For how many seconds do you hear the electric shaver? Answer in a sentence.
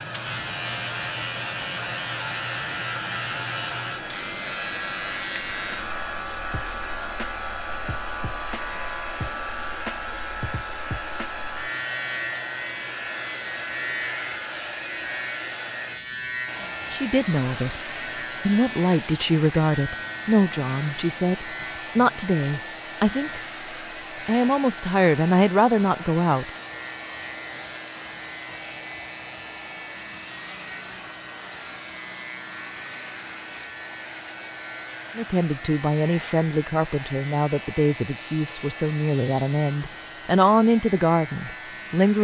You can hear the electric shaver for 42 seconds altogether.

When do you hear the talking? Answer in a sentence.
You can hear the talking from 16.9 to 23.4 s, from 24.2 to 26.5 s and from 35.1 to 42.1 s.